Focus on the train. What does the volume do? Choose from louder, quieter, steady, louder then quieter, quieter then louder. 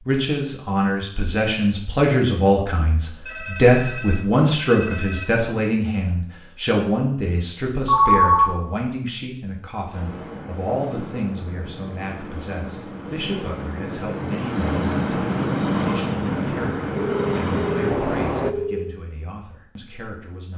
louder.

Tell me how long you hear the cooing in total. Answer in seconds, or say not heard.
not heard.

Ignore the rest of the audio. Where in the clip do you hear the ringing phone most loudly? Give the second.
8 s.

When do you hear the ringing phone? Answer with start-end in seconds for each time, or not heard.
3.2-5.2, 7.8-8.6, 17.1-18.9.